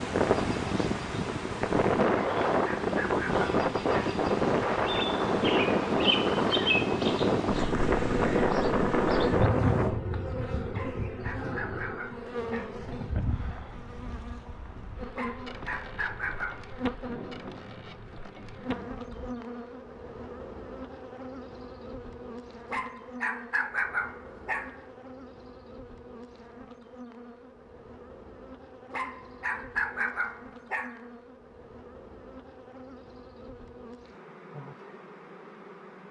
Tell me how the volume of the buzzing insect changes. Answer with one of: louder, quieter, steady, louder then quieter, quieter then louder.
quieter.